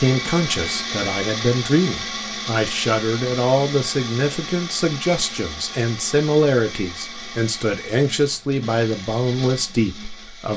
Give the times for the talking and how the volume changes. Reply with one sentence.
The talking can be heard from 0.0 to 10.5 s, at a steady volume.